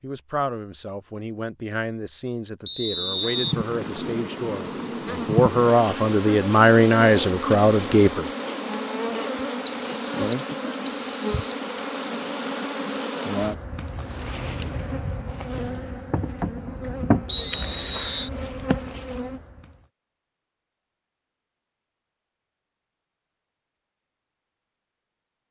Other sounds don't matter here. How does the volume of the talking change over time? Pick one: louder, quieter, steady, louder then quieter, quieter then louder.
louder.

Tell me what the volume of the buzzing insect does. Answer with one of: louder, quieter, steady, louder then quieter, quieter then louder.
steady.